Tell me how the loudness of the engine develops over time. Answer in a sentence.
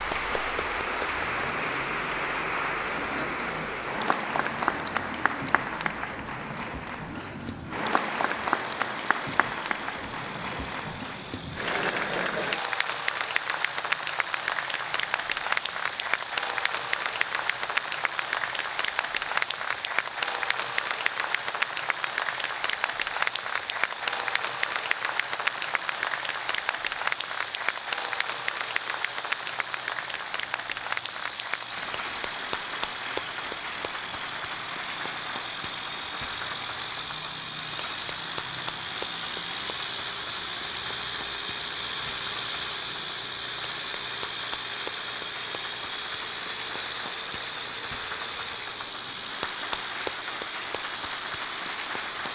The loudness of the engine goes up.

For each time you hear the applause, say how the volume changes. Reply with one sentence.
The applause can be heard from 0.0 to 52.3 s, getting quieter.